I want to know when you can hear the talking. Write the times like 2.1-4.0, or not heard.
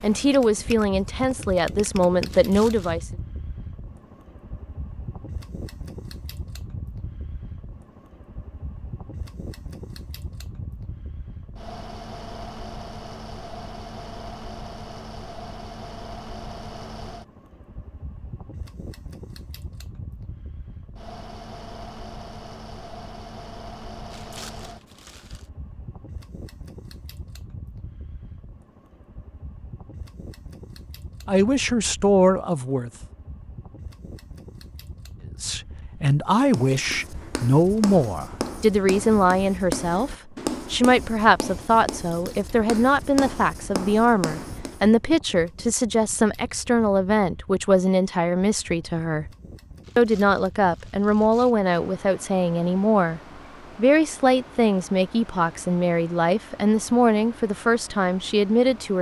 0.0-3.0, 31.2-32.9, 35.4-49.2, 50.0-58.9.